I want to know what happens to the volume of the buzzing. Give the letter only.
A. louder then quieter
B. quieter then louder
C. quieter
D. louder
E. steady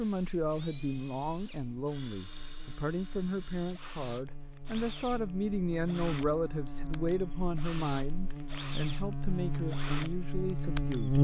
D.